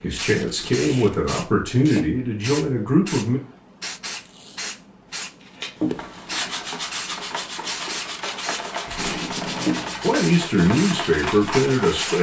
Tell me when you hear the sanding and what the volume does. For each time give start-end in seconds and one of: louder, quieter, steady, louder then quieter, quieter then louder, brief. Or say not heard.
5.4-12.1 steady.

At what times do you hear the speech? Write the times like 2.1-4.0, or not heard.
0.0-3.4, 10.0-12.1.